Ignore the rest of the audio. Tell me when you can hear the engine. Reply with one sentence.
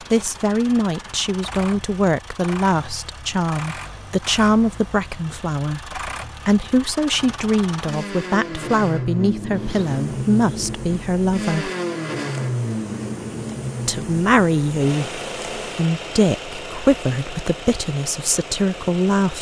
You can hear the engine from 0.0 to 19.3 s.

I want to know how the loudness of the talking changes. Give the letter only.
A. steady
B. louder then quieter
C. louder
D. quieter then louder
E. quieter
A.